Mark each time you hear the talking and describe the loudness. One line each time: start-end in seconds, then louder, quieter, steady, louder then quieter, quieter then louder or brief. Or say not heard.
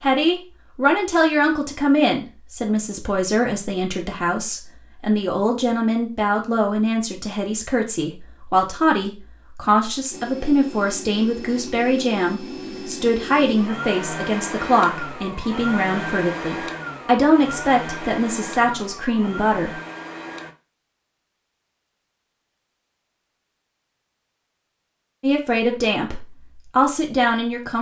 0.0-19.7 steady
25.2-27.7 brief.